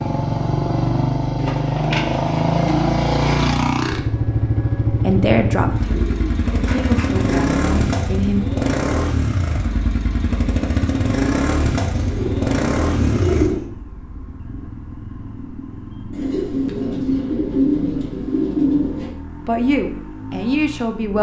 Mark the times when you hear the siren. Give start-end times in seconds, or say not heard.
not heard.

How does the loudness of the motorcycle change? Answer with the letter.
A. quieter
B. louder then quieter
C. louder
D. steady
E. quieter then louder
A.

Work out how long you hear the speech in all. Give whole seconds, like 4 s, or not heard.
5 s.